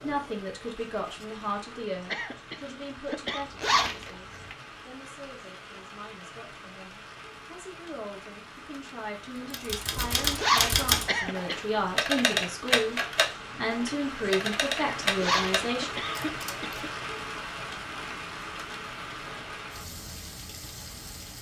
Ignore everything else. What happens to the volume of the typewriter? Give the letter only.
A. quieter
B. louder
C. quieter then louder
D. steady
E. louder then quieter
A.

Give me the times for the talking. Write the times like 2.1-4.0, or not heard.
0.0-15.9.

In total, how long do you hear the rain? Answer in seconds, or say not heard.
21 s.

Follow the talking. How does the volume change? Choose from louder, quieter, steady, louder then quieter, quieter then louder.
quieter then louder.